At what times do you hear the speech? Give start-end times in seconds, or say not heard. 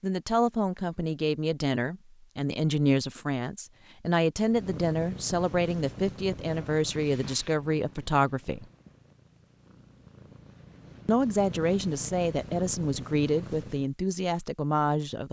0.0-8.7, 11.1-15.2.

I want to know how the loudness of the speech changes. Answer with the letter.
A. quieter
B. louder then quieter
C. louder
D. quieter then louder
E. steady
E.